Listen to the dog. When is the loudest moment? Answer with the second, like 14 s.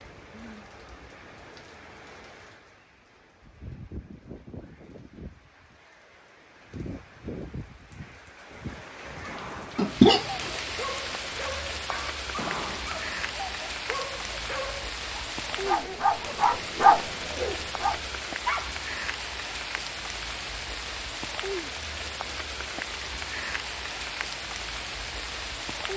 17 s.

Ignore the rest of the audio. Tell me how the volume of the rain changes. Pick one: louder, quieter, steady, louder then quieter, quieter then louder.
louder.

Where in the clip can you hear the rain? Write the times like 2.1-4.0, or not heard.
0.0-25.9.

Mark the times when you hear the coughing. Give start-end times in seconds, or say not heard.
9.8-10.5.